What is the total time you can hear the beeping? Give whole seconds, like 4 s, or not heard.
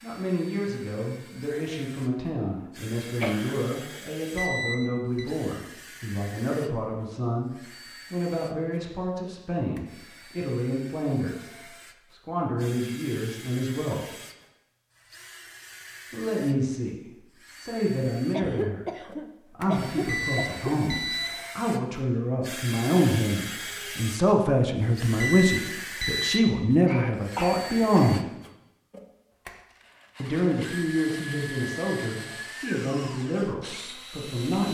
4 s.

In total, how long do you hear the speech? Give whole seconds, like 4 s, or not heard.
29 s.